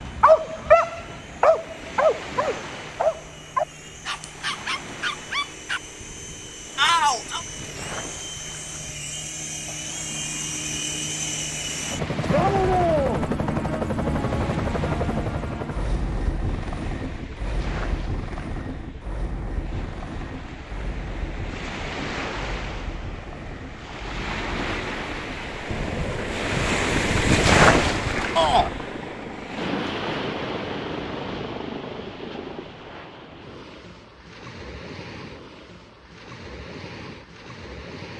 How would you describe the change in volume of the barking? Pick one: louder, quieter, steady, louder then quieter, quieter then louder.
quieter.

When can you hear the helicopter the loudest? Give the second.
13 s.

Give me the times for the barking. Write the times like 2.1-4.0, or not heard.
0.0-5.8.